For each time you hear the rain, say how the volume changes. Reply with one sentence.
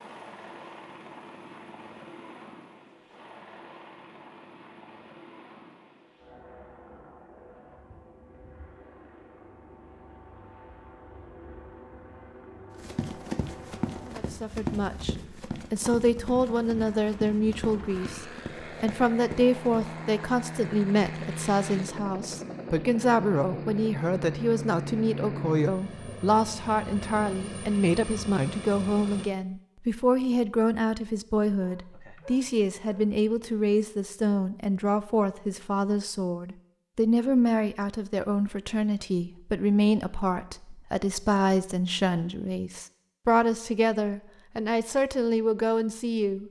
You can't hear the rain here.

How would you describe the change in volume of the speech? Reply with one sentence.
The volume of the speech stays about the same.